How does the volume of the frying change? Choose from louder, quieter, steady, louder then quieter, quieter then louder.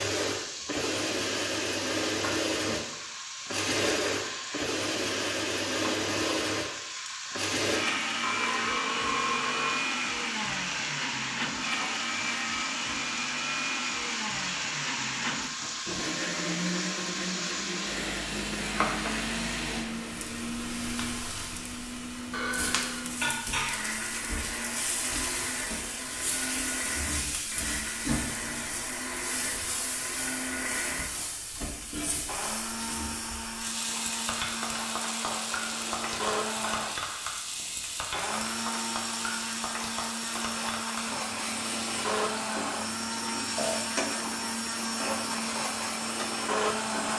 steady.